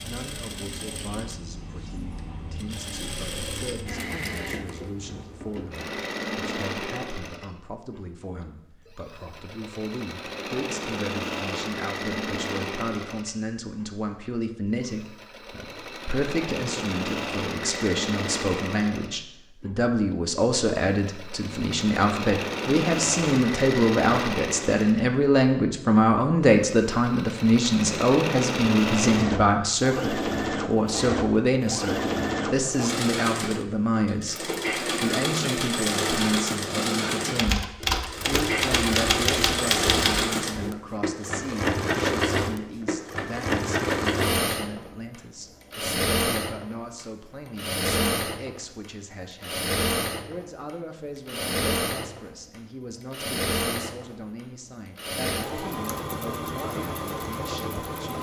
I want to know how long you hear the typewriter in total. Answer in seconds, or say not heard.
3 s.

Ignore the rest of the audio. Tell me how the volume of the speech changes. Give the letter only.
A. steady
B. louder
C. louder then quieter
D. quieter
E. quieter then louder
C.